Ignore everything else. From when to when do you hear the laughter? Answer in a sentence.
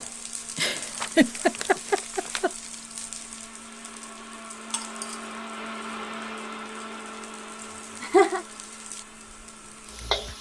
You can hear the laughter from 0.6 to 2.5 s and from 7.6 to 8.4 s.